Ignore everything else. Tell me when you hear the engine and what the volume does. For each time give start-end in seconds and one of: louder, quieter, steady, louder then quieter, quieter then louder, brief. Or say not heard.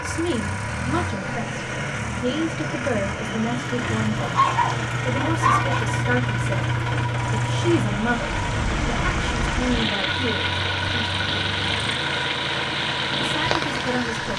0.0-14.3 steady.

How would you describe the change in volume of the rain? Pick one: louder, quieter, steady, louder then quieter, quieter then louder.
steady.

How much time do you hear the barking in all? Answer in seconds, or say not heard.
2 s.